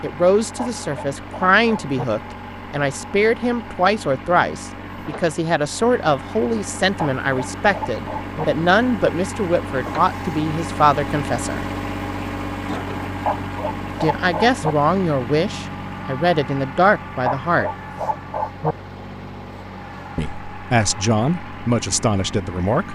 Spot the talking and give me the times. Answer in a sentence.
You can hear the talking from 0.0 to 11.7 s, from 14.0 to 17.7 s and from 20.1 to 22.9 s.